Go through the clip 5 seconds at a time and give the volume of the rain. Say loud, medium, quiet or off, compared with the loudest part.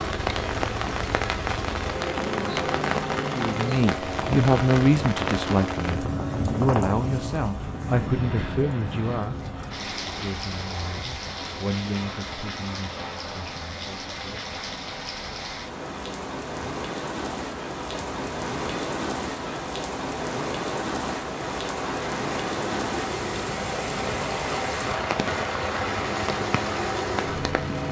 loud, loud, medium, loud, loud, loud.